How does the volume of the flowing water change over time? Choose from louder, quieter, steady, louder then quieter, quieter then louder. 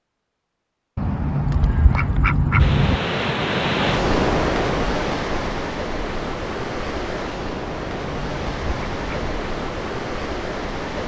quieter.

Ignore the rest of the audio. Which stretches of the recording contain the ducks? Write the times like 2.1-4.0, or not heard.
0.9-3.0, 7.8-9.3.